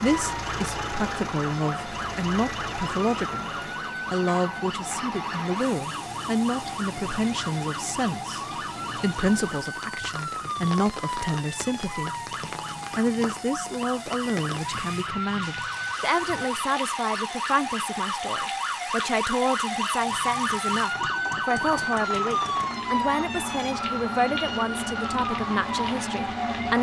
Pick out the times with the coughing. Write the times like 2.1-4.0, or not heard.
not heard.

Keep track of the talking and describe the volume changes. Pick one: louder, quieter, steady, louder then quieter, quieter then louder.
steady.